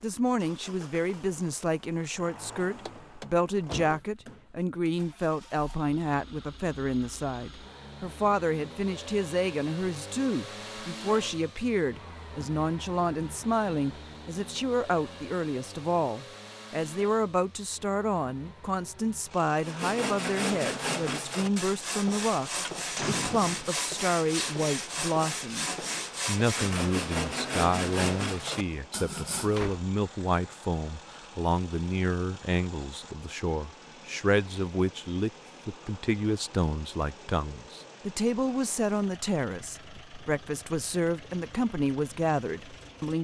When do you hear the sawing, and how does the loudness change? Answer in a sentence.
You can hear the sawing from 19.6 to 29.6 s, at a steady volume.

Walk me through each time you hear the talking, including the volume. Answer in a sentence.
You can hear the talking from 0.0 to 43.1 s, at a steady volume.